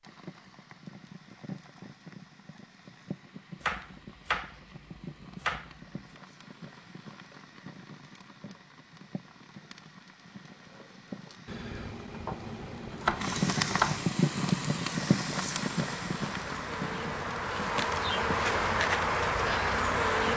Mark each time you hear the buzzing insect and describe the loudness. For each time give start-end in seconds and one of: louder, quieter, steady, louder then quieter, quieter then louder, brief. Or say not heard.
14.3-20.3 louder.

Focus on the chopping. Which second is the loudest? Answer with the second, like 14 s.
14 s.